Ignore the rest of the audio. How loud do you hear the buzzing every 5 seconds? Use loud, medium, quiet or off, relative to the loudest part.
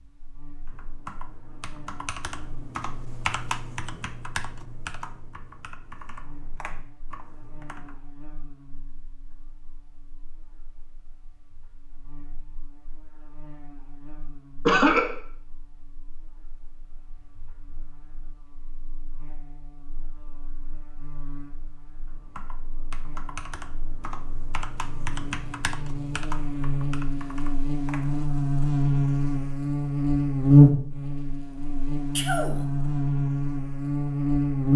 quiet, quiet, quiet, quiet, quiet, medium, loud.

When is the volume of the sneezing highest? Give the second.
15 s.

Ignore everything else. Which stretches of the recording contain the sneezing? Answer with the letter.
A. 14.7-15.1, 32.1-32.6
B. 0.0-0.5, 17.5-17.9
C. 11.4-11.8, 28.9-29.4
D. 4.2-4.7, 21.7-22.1
A.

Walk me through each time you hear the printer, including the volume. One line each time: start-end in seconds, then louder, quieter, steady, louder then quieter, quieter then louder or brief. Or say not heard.
not heard.